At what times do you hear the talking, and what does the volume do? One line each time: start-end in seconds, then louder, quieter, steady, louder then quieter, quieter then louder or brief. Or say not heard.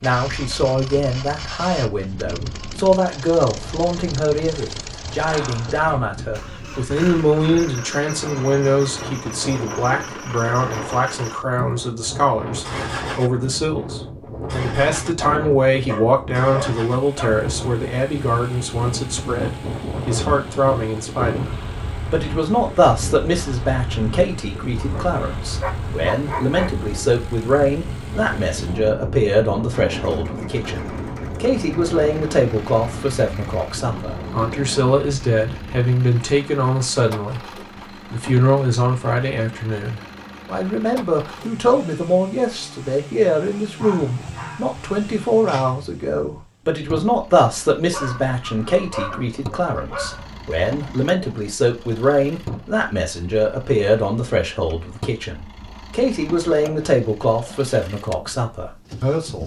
0.0-37.5 steady
38.1-59.4 steady.